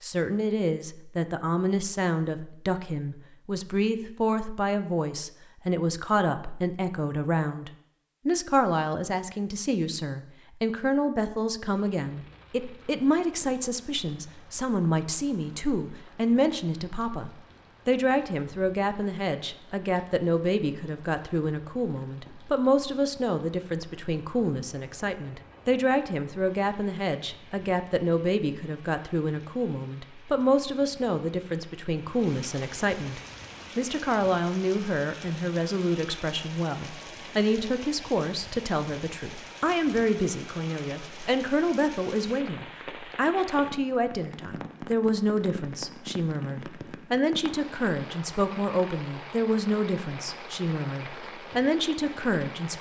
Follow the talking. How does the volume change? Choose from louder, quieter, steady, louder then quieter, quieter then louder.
steady.